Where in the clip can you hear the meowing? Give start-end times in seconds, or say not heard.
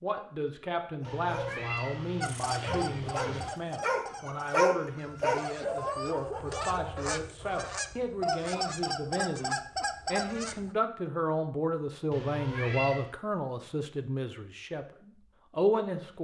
1.0-3.5, 12.1-13.1.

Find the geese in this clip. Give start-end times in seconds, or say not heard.
2.2-10.7.